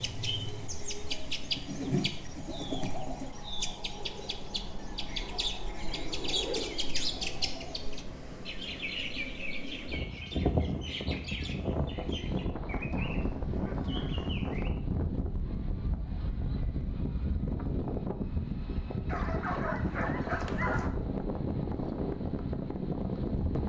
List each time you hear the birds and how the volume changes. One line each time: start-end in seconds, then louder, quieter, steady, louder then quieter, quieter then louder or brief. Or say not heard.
0.0-14.7 quieter.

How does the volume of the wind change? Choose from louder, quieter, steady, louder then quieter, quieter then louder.
louder.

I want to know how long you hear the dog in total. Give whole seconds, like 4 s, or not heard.
2 s.